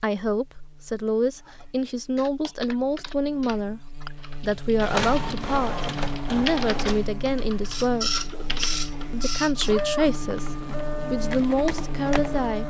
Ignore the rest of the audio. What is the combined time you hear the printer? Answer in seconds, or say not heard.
8 s.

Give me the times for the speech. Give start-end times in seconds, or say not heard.
0.0-8.2, 9.1-12.6.